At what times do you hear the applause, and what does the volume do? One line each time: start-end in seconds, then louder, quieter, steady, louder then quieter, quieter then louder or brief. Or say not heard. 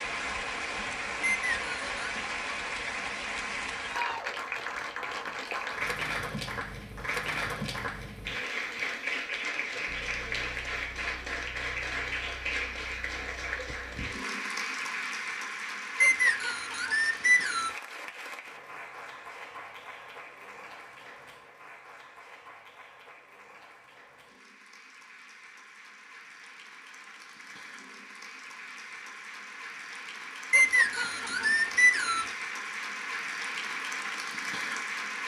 0.0-35.2 quieter then louder.